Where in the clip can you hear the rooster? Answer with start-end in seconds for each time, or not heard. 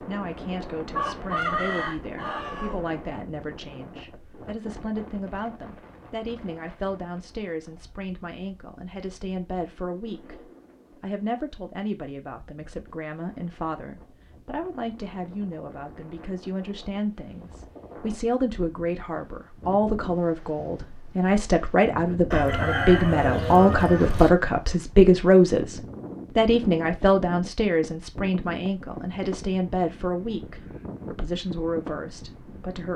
0.9-2.8, 22.3-24.3.